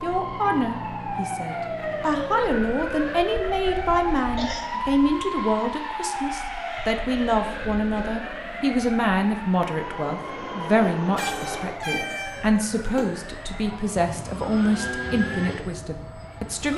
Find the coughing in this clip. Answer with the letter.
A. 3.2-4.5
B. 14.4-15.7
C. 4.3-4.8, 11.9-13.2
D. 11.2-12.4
C.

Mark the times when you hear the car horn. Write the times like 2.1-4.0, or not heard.
11.2-12.4.